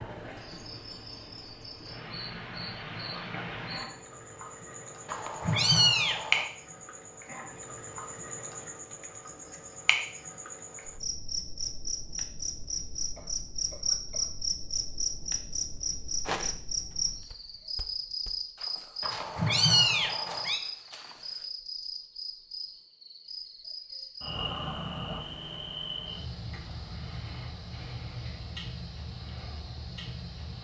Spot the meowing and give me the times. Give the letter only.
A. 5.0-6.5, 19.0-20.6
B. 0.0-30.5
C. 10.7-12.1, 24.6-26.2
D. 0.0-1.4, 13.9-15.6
A.